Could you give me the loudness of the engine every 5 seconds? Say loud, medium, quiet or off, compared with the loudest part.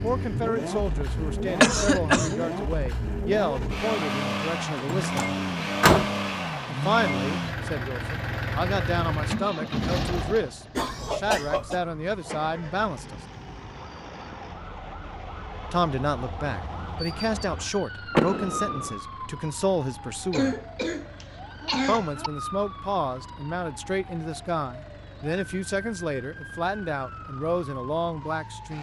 loud, loud, medium, quiet, quiet, quiet.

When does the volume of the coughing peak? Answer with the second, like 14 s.
2 s.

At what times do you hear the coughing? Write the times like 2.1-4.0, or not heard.
1.6-2.5, 10.8-11.8, 20.3-22.3.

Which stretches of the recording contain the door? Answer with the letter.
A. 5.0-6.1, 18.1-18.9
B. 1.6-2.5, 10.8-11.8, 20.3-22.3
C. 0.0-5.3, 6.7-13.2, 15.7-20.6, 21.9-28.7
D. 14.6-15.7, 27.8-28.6
A.